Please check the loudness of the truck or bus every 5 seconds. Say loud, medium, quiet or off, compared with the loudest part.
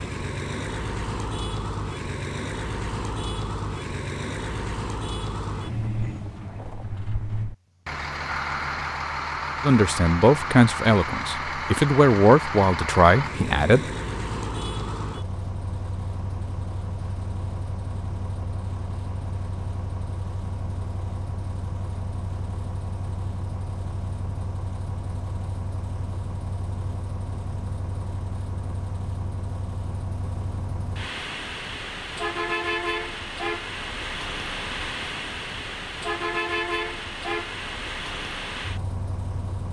loud, loud, loud, medium, medium, medium, loud, loud.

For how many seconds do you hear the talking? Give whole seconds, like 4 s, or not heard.
4 s.